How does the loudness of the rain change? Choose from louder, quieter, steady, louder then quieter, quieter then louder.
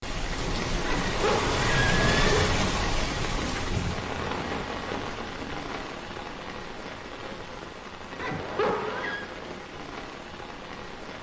quieter.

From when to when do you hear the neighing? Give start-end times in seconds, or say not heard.
0.8-2.5, 8.2-9.2.